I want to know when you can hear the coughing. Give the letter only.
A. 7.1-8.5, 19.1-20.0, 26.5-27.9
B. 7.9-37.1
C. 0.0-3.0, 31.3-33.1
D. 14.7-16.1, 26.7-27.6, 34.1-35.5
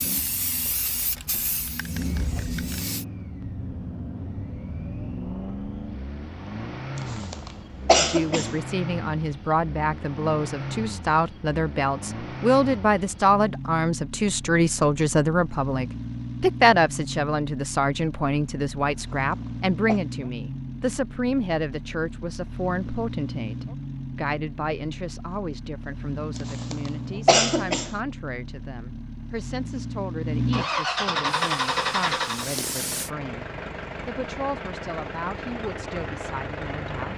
A.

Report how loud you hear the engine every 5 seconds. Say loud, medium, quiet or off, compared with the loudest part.
medium, medium, medium, medium, medium, medium, loud, medium.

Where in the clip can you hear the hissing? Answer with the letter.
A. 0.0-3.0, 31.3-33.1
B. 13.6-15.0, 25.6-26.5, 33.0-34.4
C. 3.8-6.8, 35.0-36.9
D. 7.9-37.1
A.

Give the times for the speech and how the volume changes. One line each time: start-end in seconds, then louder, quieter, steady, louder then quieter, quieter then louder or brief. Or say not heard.
7.9-37.1 quieter.